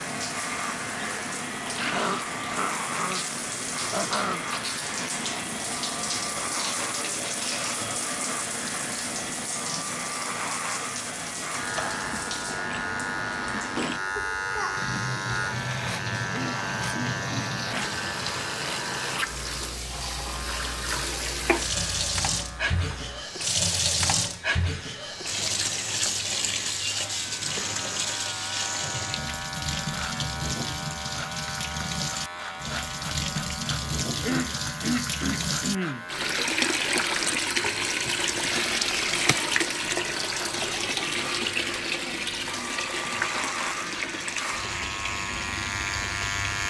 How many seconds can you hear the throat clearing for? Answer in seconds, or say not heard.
6 s.